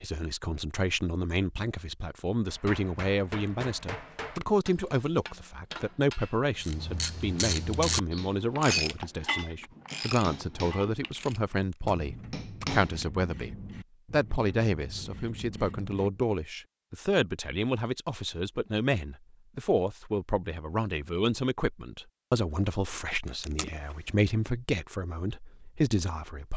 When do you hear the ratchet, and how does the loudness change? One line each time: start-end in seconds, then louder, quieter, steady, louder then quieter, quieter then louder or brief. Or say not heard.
6.5-16.2 quieter.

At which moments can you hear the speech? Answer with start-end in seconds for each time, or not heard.
0.0-13.5, 14.1-26.5.